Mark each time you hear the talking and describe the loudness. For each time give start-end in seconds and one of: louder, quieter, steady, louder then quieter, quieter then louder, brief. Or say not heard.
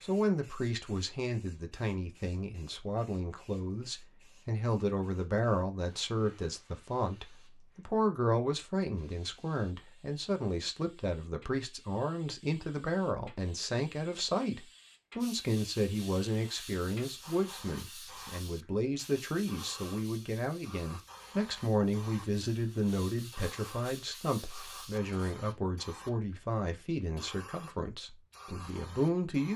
0.0-29.5 steady.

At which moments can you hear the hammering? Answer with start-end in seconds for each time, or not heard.
not heard.